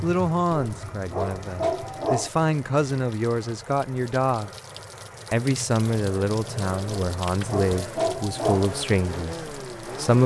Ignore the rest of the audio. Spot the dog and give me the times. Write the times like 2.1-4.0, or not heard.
0.5-2.3, 6.8-8.7.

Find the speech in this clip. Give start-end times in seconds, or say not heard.
0.0-4.5, 5.3-10.2.